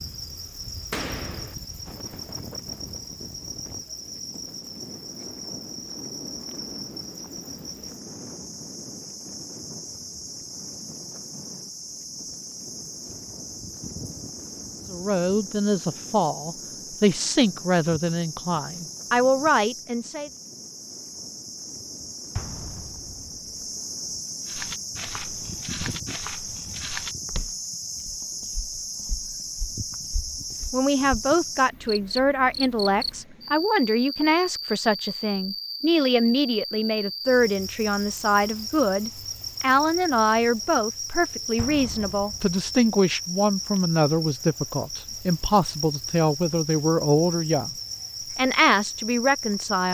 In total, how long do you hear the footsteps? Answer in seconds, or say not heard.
7 s.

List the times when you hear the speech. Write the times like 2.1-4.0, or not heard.
14.9-20.3, 30.7-47.8, 48.4-49.9.